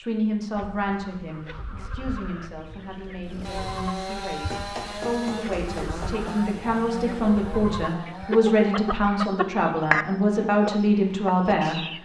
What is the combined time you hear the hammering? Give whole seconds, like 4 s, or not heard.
2 s.